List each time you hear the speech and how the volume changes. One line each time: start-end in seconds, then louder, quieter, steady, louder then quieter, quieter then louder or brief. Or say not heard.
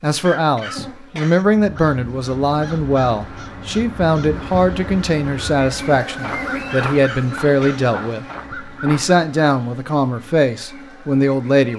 0.0-11.7 steady.